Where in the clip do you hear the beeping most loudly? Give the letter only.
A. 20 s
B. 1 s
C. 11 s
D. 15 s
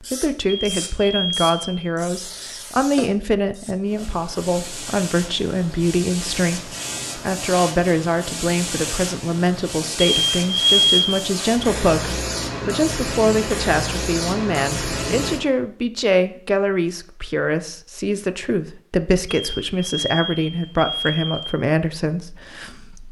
C.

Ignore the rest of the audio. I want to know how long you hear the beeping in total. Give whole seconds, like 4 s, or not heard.
5 s.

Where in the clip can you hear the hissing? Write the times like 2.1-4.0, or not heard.
0.0-15.4.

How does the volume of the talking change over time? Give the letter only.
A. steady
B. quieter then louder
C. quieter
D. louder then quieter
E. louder
A.